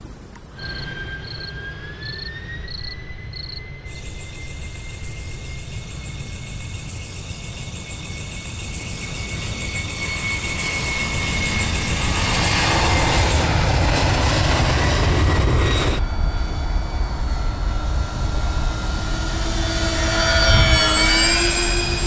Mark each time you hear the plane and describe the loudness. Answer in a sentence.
You can hear the plane from 0.3 to 22.0 s, getting louder.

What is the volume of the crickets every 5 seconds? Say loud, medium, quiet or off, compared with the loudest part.
medium, medium, loud, off, off.